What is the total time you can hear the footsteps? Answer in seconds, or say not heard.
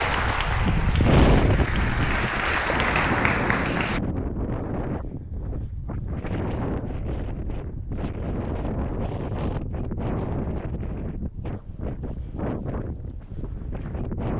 not heard.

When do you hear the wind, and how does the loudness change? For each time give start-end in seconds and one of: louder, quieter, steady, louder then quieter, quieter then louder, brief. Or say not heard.
0.0-14.3 quieter.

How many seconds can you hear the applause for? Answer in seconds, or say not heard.
4 s.